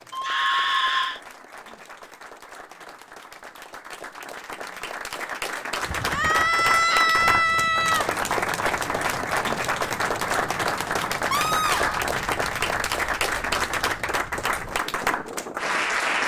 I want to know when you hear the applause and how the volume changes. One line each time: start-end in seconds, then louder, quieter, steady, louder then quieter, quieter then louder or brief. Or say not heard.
0.0-16.2 louder.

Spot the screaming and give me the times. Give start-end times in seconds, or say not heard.
0.1-1.2, 6.1-8.1, 11.3-12.1.